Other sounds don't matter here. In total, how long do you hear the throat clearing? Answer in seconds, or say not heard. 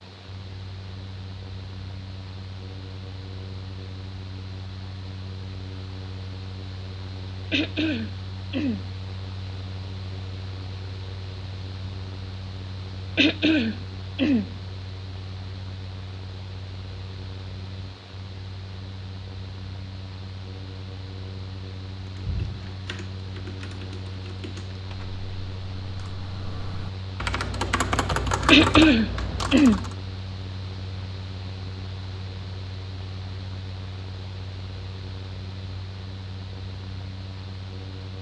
4 s.